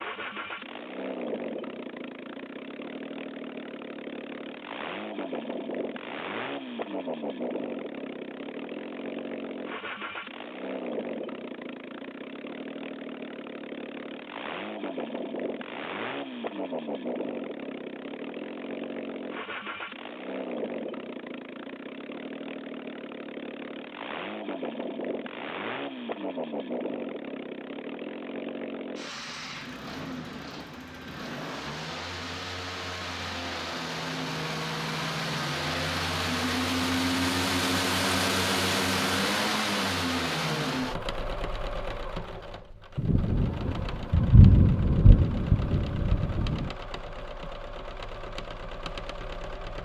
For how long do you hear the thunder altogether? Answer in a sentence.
The thunder can be heard for 4 seconds in total.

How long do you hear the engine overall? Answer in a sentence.
The engine can be heard for 50 seconds in total.